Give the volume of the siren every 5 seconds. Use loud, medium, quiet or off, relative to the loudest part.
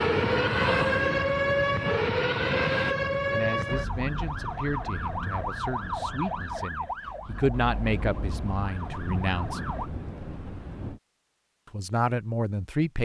loud, medium, off.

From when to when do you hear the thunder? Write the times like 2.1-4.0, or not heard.
7.5-11.0.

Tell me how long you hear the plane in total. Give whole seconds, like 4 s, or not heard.
3 s.